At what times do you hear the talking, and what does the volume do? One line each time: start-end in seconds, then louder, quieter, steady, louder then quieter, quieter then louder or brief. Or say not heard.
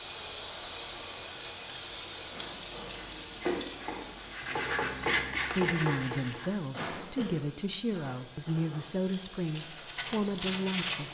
5.5-11.1 steady.